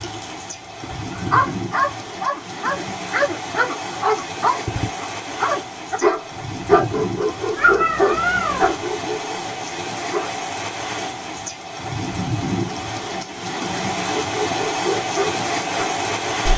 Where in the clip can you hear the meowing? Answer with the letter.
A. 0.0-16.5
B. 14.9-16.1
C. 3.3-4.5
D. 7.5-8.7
D.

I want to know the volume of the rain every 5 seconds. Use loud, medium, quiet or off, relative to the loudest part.
medium, medium, loud, loud.